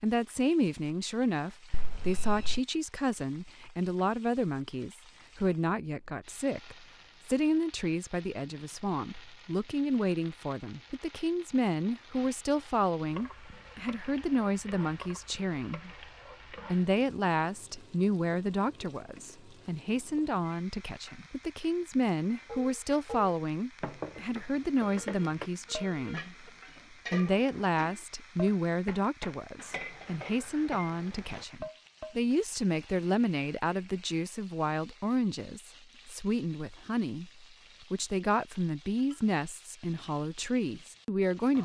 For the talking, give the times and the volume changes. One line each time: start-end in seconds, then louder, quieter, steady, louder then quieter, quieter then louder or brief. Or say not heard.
0.0-15.9 steady
16.6-41.6 steady.